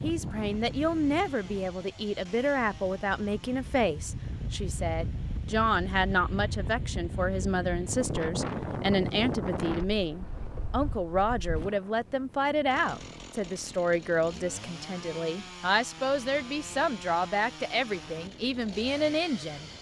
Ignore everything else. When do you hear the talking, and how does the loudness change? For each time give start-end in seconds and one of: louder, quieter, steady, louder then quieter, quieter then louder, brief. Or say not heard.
0.0-19.7 steady.